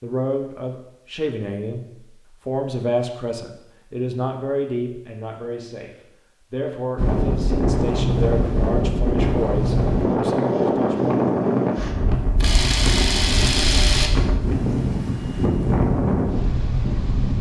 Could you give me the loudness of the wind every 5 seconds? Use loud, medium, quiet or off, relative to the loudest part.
off, loud, loud, loud.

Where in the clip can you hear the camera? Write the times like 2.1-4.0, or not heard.
12.1-14.1.